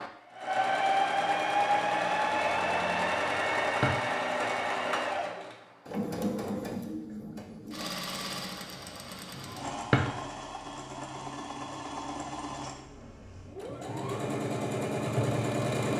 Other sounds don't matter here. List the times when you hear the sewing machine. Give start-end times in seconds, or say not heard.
0.0-15.9.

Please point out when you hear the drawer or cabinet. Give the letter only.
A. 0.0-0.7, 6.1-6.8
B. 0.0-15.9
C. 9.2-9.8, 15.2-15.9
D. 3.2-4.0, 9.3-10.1
D.